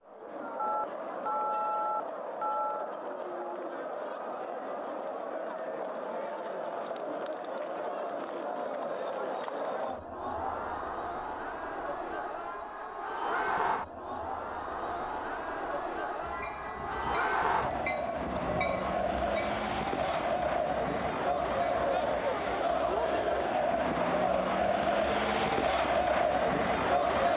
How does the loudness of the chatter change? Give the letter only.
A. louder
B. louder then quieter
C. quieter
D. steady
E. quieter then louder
A.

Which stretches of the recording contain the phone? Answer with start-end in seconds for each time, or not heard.
0.6-2.9, 25.1-25.6.